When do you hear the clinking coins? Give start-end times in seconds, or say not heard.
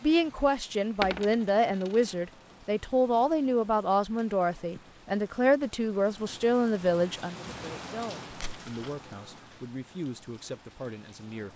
1.0-2.1, 8.3-8.9.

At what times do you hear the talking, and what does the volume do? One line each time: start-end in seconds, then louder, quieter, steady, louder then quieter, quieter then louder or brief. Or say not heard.
0.0-11.5 quieter.